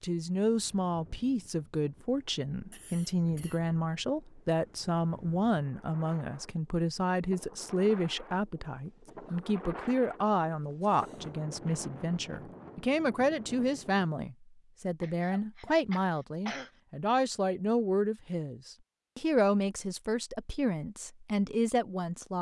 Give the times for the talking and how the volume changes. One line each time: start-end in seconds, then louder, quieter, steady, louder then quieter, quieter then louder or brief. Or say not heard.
0.0-22.3 steady.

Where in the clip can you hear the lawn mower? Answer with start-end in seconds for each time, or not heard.
not heard.